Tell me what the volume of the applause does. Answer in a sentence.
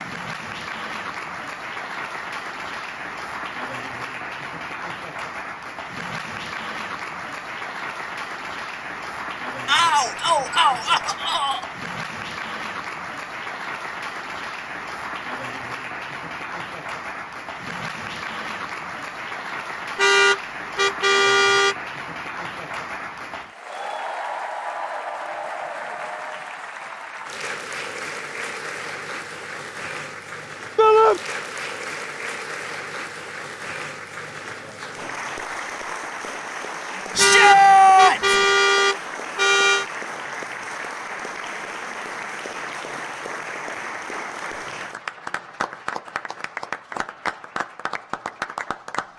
The loudness of the applause stays about the same.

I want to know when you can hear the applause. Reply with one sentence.
The applause can be heard from 0.0 to 49.1 s.